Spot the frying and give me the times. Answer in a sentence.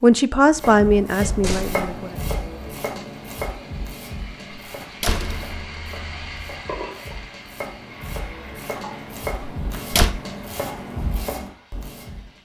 The frying can be heard from 1.8 to 12.4 s.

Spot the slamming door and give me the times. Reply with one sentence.
You can hear the slamming door from 1.2 to 1.9 s, from 4.7 to 6.6 s and from 9.4 to 10.1 s.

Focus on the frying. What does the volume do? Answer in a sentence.
The volume of the frying goes up, then down.